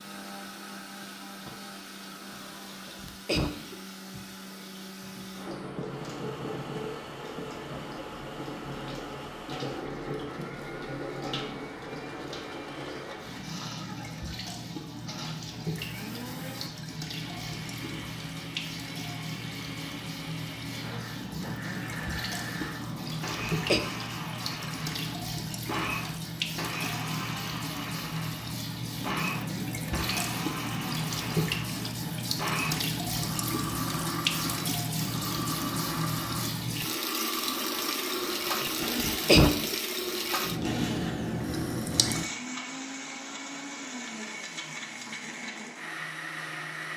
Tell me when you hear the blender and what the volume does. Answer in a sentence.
The blender can be heard from 0.0 to 46.9 s, getting louder.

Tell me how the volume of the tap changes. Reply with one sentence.
The volume of the tap goes up.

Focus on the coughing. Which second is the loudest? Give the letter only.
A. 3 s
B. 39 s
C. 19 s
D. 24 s
B.